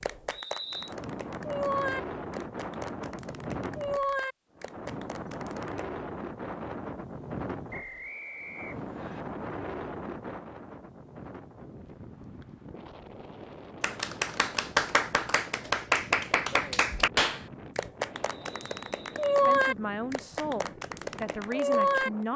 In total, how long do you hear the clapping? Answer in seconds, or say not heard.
14 s.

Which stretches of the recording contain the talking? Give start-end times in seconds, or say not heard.
19.4-22.3.